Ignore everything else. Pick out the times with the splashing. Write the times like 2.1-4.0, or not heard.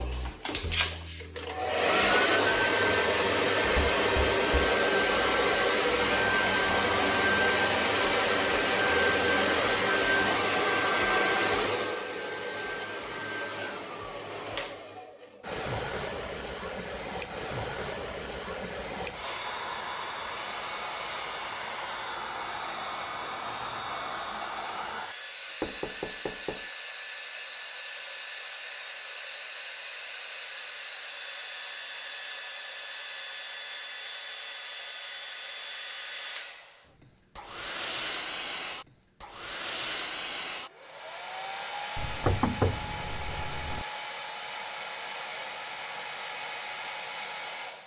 not heard.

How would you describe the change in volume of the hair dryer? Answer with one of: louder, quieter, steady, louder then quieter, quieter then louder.
quieter.